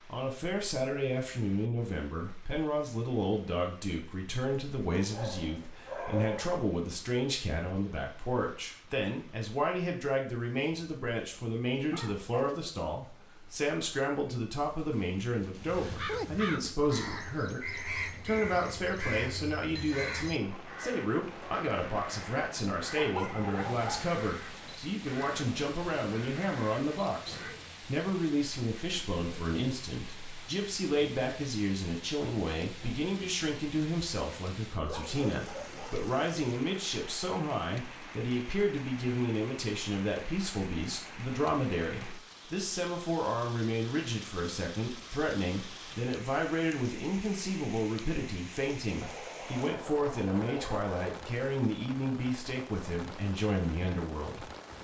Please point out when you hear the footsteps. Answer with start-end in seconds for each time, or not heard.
not heard.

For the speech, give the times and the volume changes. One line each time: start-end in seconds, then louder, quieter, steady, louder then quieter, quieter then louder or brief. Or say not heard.
0.1-54.5 steady.